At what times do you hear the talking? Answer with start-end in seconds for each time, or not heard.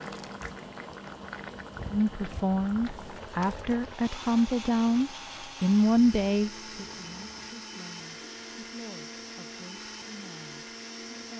1.9-11.3.